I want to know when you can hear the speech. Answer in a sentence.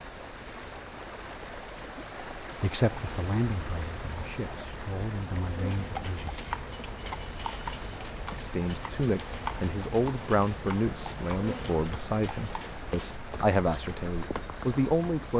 The speech can be heard from 2.6 to 6.3 s and from 8.3 to 15.3 s.